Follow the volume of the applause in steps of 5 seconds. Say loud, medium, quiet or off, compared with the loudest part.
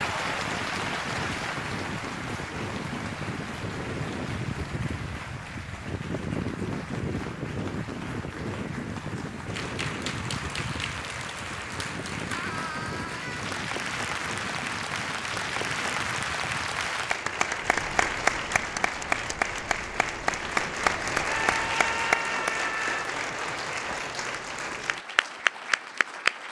medium, quiet, medium, loud, loud, loud.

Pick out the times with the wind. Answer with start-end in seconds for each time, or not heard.
0.0-22.1.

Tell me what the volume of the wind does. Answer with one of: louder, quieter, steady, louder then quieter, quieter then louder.
quieter.